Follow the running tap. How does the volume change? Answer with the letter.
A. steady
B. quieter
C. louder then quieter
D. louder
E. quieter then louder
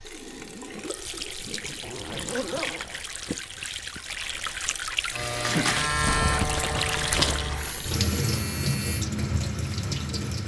D.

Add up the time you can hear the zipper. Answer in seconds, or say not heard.
3 s.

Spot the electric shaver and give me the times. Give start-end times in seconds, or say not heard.
5.1-9.1.